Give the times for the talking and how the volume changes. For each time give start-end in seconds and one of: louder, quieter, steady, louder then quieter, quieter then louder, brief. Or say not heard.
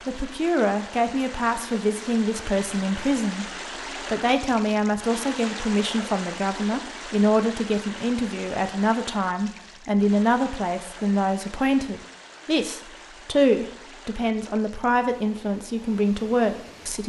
0.1-17.0 steady.